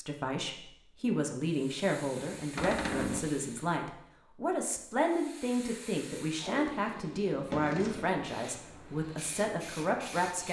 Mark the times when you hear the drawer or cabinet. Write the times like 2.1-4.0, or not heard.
2.5-3.3, 7.3-8.3.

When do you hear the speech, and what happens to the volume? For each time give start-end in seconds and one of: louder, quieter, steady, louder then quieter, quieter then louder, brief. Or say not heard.
0.0-10.4 steady.